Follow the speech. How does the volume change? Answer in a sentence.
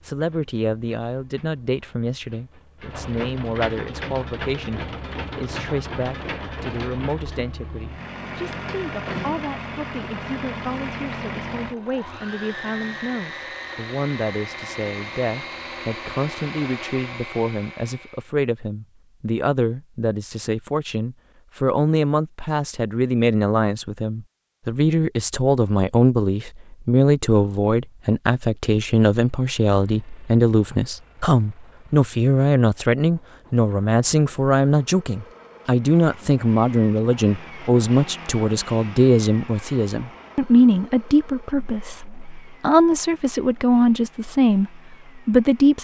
The volume of the speech goes up.